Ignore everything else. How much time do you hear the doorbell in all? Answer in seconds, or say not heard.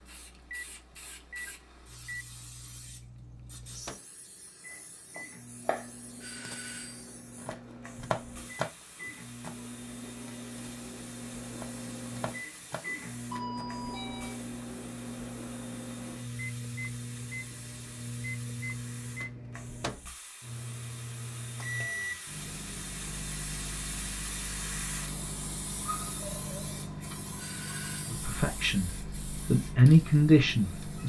3 s.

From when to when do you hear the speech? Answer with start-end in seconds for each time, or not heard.
28.1-31.0.